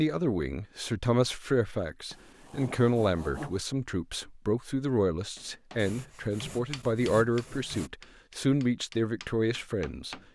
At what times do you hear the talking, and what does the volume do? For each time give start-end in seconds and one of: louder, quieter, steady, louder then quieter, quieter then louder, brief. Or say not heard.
0.0-10.2 steady.